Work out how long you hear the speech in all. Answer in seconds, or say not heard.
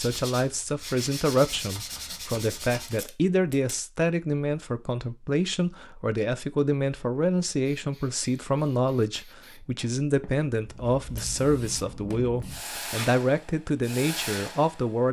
15 s.